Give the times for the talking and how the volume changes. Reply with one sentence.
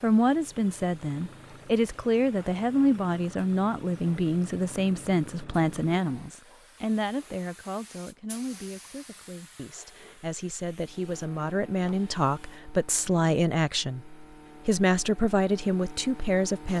You can hear the talking from 0.0 to 16.7 s, getting quieter then louder.